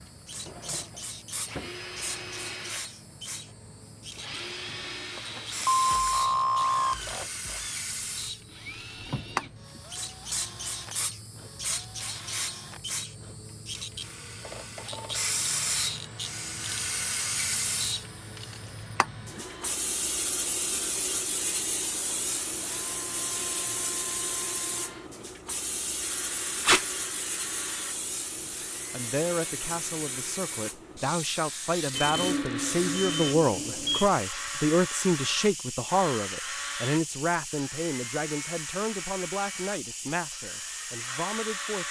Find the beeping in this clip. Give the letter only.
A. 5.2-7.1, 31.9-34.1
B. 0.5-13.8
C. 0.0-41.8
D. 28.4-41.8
A.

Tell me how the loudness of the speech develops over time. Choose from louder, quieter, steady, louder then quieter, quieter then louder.
louder then quieter.